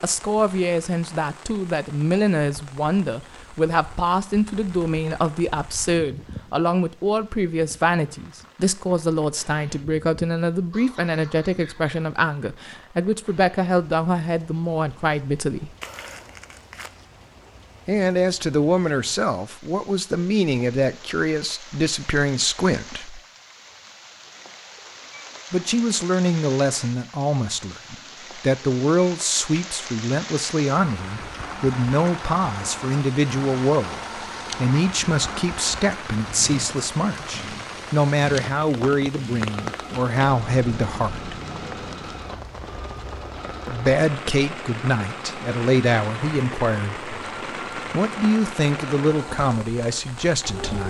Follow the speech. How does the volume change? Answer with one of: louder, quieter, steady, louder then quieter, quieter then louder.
steady.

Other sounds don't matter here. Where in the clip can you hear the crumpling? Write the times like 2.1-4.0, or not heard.
15.8-16.9.